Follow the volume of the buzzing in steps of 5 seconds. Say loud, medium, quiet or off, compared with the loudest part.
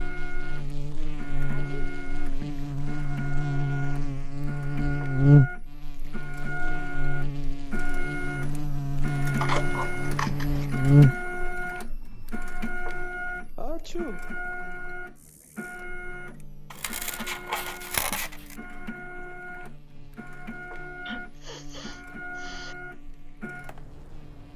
medium, loud, loud, quiet, quiet.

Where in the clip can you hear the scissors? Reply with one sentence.
You can hear the scissors from 9.3 to 10.8 s and from 16.7 to 18.6 s.